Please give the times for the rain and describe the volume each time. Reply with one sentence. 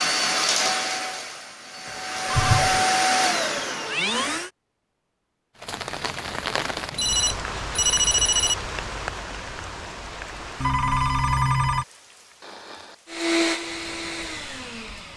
The rain can be heard from 5.5 to 15.1 s, getting quieter.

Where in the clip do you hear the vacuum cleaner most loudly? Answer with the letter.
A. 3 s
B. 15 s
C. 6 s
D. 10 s
A.